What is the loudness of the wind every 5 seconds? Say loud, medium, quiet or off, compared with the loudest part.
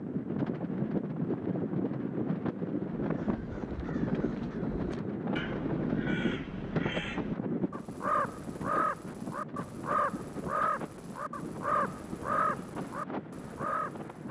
loud, loud, medium.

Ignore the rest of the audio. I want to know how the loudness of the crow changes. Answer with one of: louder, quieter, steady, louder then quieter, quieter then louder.
louder.